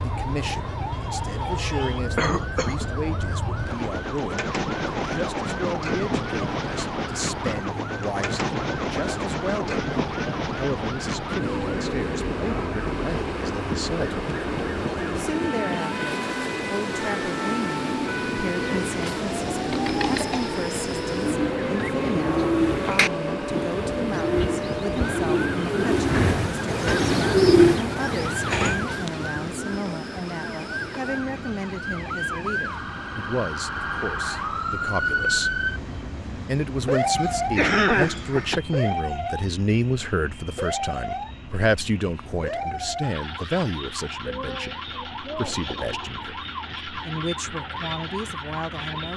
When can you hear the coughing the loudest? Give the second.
38 s.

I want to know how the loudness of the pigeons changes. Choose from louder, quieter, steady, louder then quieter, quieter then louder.
louder.